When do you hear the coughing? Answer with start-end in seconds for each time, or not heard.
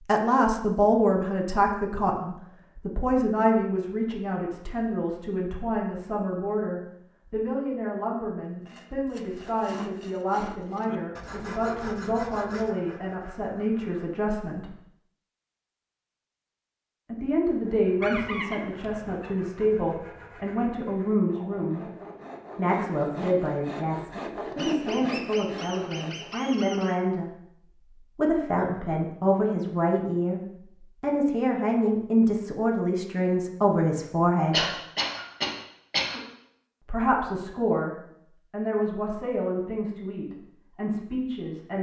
34.5-36.2.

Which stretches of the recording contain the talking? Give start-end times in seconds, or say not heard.
0.1-14.7, 17.1-21.9, 22.6-27.6, 28.1-34.6, 36.9-41.7.